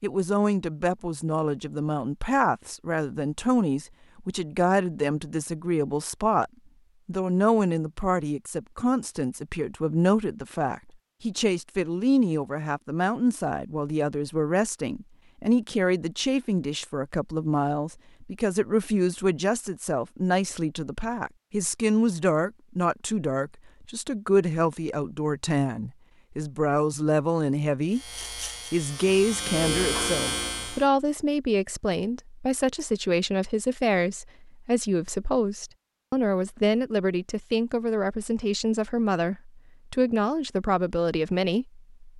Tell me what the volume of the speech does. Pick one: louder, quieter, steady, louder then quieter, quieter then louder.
steady.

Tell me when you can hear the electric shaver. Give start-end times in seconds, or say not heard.
27.9-30.9.